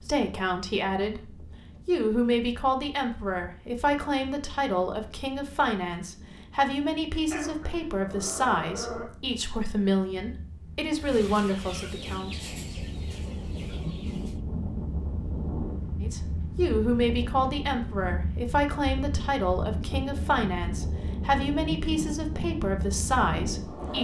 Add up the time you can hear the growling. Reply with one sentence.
You can hear the growling for 2 seconds altogether.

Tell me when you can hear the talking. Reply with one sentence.
You can hear the talking from 0.0 to 12.4 s and from 16.0 to 23.9 s.